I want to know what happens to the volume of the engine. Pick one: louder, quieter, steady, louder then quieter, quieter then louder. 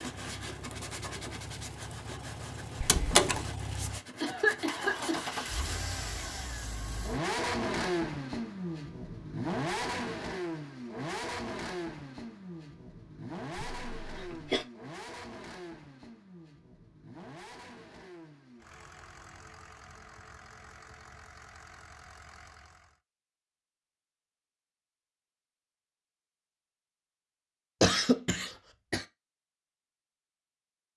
louder then quieter.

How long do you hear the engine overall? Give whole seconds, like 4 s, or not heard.
23 s.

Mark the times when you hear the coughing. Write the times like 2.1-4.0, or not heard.
4.2-5.3, 13.5-14.7, 27.8-29.1.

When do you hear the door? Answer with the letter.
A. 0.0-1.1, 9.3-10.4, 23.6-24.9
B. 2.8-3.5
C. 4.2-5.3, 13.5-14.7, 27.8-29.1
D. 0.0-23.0
B.